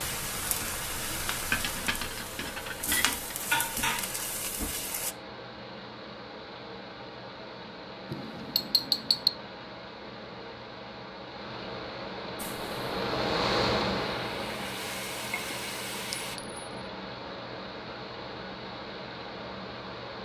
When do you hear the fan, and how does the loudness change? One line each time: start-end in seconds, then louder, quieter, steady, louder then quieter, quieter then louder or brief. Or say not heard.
0.0-20.2 louder then quieter.